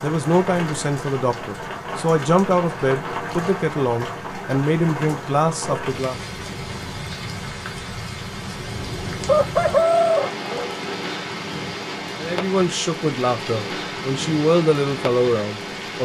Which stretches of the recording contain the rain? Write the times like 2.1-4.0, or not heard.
0.0-16.0.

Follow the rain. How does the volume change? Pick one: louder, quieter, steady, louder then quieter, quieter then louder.
steady.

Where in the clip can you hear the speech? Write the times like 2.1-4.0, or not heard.
0.0-6.2, 12.2-16.0.